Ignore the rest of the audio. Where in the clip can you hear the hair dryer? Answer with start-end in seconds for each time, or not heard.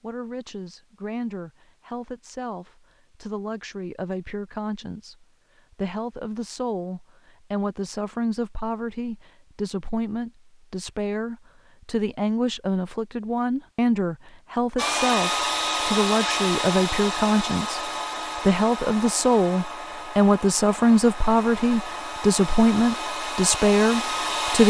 14.8-24.6.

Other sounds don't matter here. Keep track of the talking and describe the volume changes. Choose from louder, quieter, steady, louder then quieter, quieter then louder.
louder.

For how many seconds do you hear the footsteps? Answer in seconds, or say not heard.
not heard.